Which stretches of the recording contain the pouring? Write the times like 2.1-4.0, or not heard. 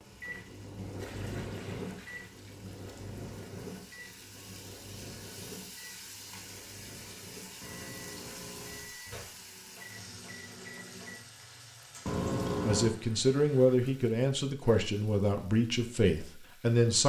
0.9-3.1, 7.6-8.9, 12.1-12.9.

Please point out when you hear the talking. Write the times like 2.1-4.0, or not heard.
12.7-17.0.